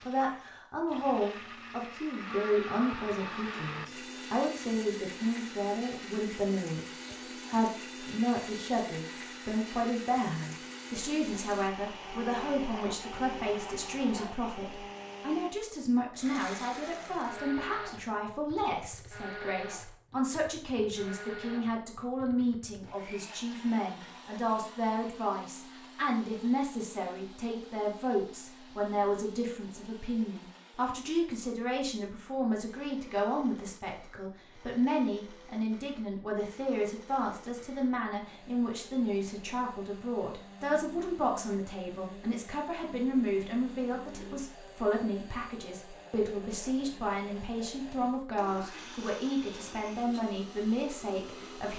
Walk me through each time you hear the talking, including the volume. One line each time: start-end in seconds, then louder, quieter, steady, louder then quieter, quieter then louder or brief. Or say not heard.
0.1-51.7 steady.